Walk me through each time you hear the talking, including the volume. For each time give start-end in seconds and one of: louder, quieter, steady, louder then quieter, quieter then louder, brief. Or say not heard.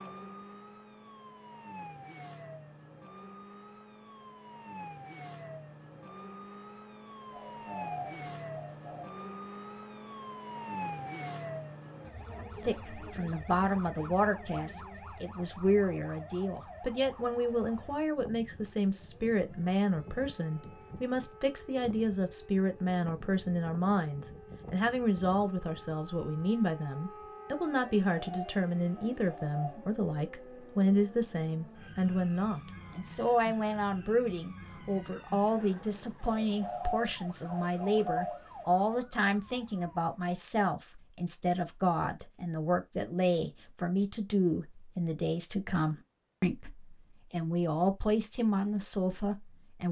12.6-49.8 steady.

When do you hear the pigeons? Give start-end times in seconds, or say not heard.
7.3-9.2, 27.9-29.8, 36.2-38.5.